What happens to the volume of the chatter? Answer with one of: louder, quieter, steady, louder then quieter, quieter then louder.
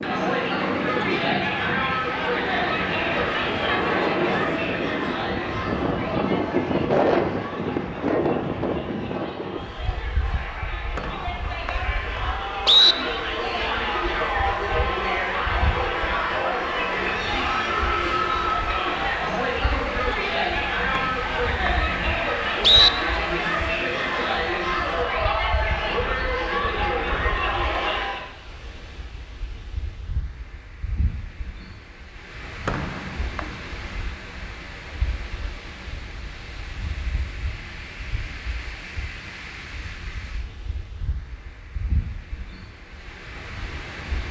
quieter then louder.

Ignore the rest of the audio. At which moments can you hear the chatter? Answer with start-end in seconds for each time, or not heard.
0.0-28.2.